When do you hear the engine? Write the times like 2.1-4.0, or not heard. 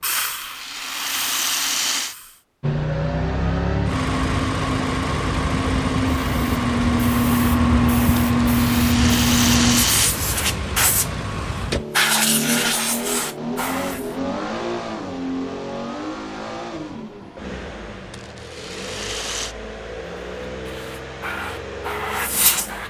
2.6-22.8.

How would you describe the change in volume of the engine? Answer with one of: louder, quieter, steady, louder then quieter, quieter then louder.
quieter.